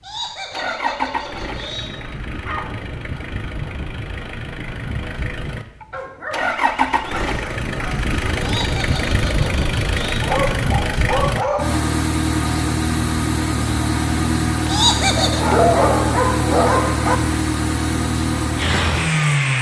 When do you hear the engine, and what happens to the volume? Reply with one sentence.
You can hear the engine from 0.1 to 19.5 s, getting louder.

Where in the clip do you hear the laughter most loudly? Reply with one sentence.
The volume of the laughter peaks at 15 seconds.